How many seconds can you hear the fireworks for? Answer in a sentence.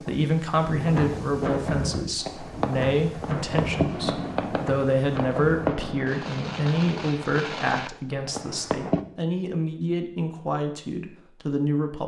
You can hear the fireworks for 7 seconds altogether.